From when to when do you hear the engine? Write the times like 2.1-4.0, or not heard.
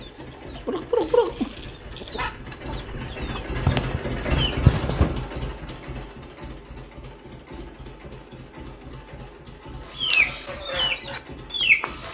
0.0-12.0.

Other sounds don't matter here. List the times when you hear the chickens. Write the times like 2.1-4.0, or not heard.
0.0-5.1, 9.9-12.0.